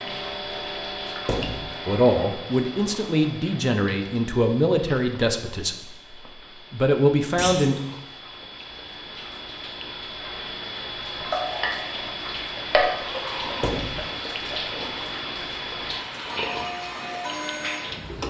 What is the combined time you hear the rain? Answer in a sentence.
You can hear the rain for 18 seconds altogether.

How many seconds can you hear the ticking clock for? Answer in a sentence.
You can hear the ticking clock for 18 seconds altogether.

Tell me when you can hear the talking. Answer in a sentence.
You can hear the talking from 1.9 to 7.8 s.